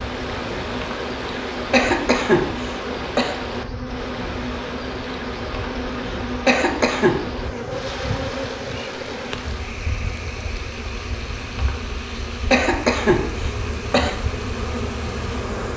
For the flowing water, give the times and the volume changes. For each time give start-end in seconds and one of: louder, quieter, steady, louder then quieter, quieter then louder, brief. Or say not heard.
0.0-15.6 quieter.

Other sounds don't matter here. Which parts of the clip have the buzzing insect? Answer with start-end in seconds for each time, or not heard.
0.0-15.7.